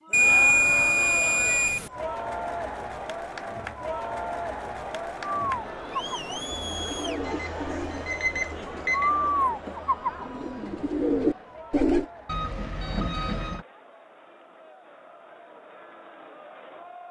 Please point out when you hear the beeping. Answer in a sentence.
You can hear the beeping from 0.1 to 1.9 s, from 7.2 to 9.1 s and from 12.2 to 13.7 s.